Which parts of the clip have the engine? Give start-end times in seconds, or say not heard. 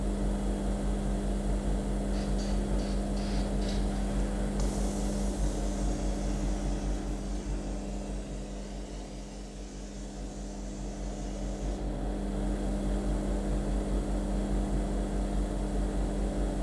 0.0-16.5.